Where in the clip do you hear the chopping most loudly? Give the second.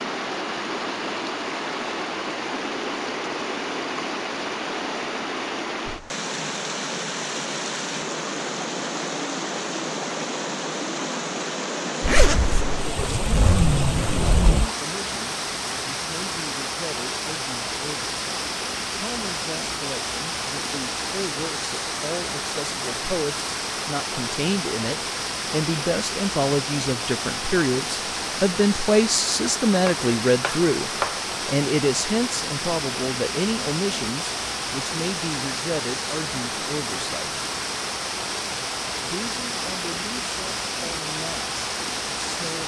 31 s.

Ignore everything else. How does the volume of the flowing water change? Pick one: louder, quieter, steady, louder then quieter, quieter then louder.
steady.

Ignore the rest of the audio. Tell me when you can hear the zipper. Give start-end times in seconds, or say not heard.
12.0-14.7.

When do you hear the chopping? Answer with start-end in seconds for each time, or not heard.
29.9-31.2.